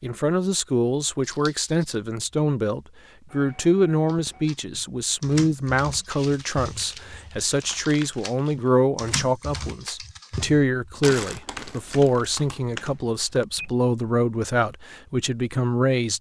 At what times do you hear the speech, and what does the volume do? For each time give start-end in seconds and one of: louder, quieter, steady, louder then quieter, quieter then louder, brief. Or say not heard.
0.0-16.1 steady.